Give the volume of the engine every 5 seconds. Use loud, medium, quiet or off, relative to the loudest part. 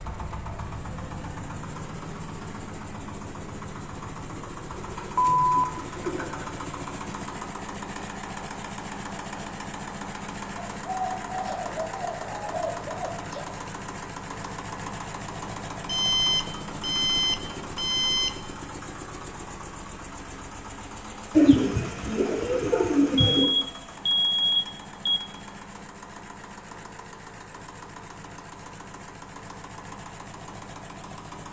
loud, loud, loud, loud, medium, medium, medium.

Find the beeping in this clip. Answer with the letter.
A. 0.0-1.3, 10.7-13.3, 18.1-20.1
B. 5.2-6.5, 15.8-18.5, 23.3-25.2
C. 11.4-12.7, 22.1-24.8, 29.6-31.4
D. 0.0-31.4
B.